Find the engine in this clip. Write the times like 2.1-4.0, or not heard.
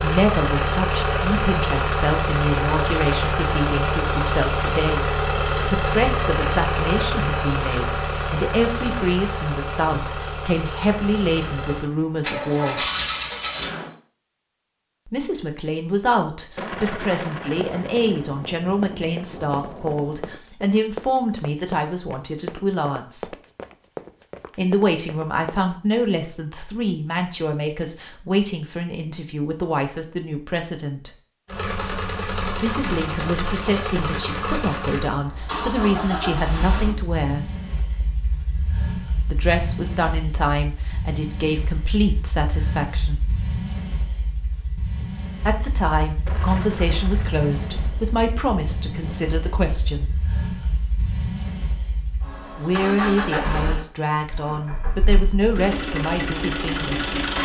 0.0-13.9, 31.4-57.4.